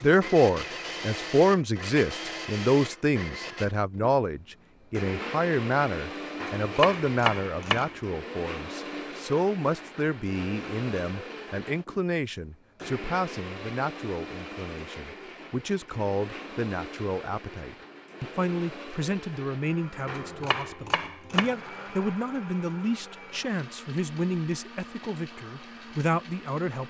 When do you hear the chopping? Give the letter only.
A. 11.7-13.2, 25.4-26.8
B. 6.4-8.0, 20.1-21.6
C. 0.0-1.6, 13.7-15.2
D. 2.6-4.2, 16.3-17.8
B.